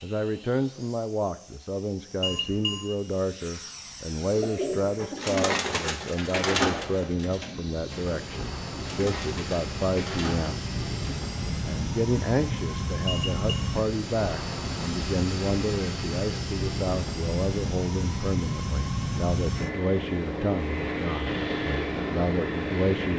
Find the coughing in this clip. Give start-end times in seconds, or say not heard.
not heard.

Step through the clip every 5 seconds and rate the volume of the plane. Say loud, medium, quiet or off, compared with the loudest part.
quiet, medium, loud, loud, loud.